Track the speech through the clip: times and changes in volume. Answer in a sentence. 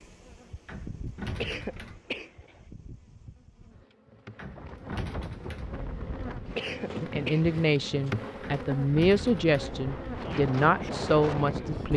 You can hear the speech from 7.0 to 11.9 s, at a steady volume.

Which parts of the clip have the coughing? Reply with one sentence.
You can hear the coughing from 1.2 to 2.6 s and from 6.4 to 7.4 s.